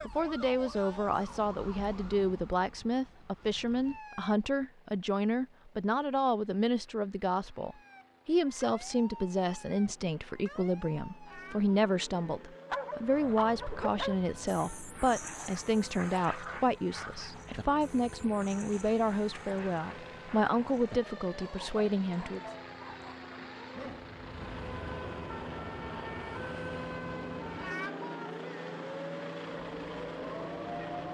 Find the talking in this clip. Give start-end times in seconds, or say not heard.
0.1-22.4.